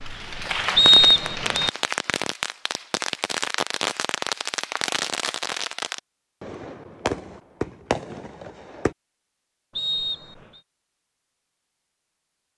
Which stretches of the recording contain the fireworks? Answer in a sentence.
You can hear the fireworks from 0.0 to 8.9 s.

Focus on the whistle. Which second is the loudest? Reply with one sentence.
The loudest moment of the whistle is at 1 second.